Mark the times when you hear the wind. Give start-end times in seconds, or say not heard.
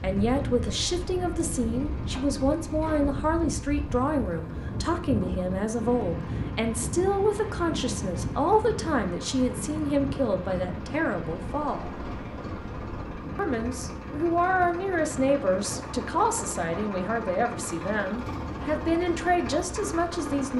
0.0-20.4.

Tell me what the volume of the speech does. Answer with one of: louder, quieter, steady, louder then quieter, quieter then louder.
steady.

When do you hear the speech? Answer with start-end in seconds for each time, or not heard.
0.0-11.9, 13.3-20.5.